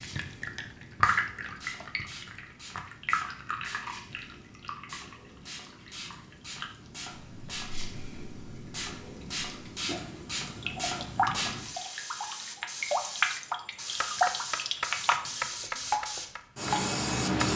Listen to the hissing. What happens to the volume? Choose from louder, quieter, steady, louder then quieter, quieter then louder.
louder.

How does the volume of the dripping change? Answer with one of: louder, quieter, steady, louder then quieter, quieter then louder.
quieter then louder.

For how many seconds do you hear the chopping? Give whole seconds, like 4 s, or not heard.
4 s.